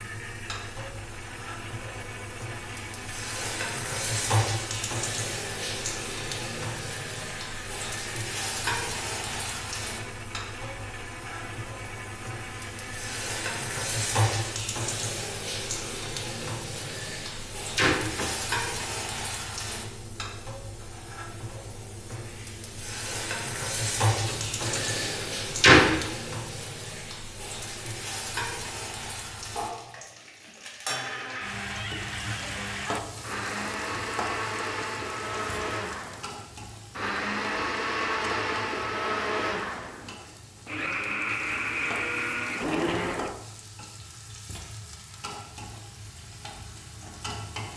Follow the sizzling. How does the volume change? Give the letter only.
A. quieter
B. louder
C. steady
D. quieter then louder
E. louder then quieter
A.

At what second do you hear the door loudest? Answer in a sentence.
The loudest moment of the door is at 26 seconds.